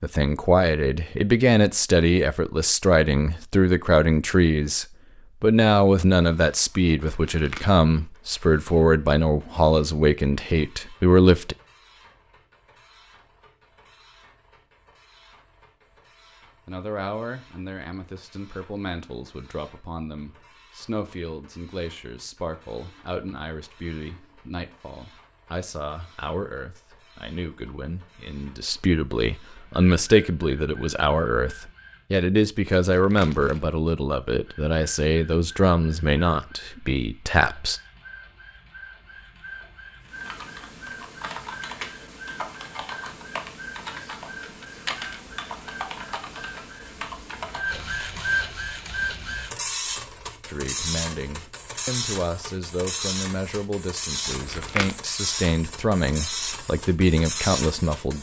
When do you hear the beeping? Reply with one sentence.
The beeping can't be heard in this clip.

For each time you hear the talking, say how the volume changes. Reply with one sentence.
You can hear the talking from 0.0 to 11.6 s, at a steady volume; from 16.6 to 37.8 s, getting louder; and from 50.5 to 58.1 s, getting louder.